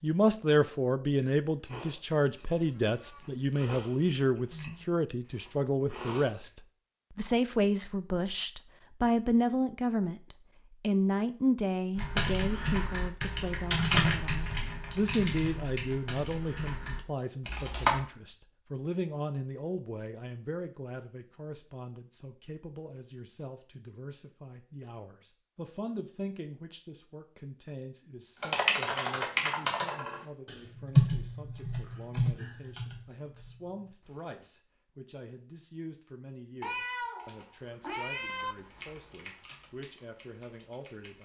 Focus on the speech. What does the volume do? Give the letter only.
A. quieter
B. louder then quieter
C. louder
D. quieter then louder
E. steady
A.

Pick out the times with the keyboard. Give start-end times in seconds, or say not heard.
11.9-18.0, 28.4-34.5, 37.1-41.2.